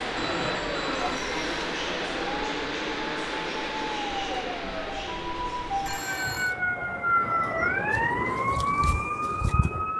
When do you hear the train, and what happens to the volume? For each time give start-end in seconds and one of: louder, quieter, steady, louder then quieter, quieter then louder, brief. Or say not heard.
0.0-6.6 quieter.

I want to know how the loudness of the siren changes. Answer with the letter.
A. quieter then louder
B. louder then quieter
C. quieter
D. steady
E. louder
E.